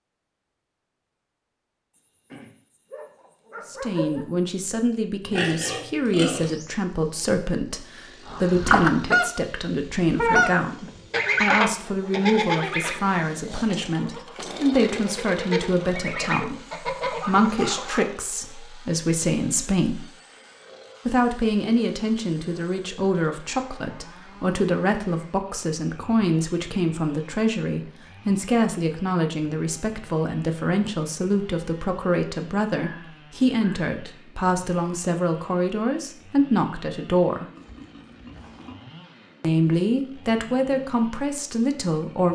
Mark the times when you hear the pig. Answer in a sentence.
The pig can be heard from 5.2 to 6.7 s and from 37.4 to 39.0 s.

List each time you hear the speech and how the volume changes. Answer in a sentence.
The speech can be heard from 3.6 to 20.1 s, at a steady volume; from 21.1 to 37.5 s, at a steady volume; and briefly from 39.4 to 42.3 s.